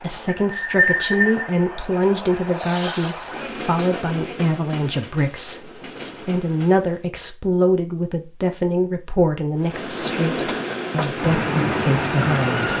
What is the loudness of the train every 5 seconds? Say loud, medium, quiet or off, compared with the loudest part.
loud, quiet, loud.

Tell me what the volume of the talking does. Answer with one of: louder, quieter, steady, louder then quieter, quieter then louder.
steady.